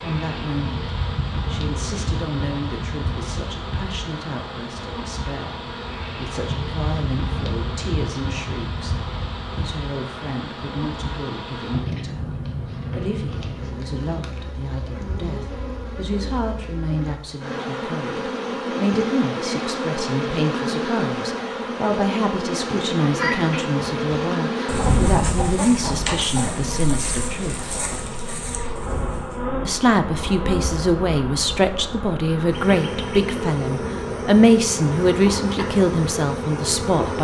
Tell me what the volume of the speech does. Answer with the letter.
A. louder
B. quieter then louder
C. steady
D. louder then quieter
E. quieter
A.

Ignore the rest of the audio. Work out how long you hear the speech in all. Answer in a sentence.
The speech can be heard for 35 seconds in total.